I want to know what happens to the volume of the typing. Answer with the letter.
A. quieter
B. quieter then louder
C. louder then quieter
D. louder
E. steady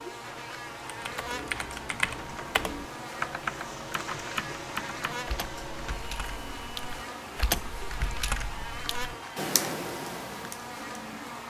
B.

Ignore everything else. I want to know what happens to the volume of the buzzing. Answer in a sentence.
The loudness of the buzzing stays about the same.